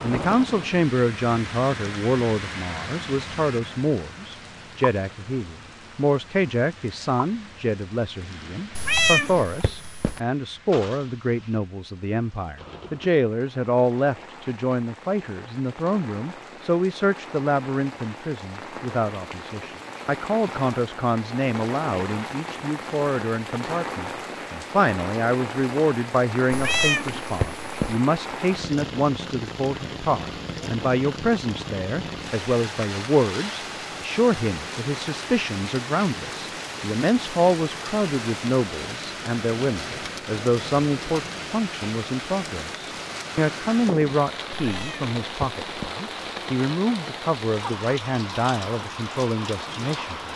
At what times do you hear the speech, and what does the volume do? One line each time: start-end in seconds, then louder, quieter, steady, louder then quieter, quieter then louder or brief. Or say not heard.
0.0-50.3 steady.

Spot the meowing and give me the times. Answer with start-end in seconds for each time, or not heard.
8.8-10.2, 26.5-28.0, 44.6-46.0.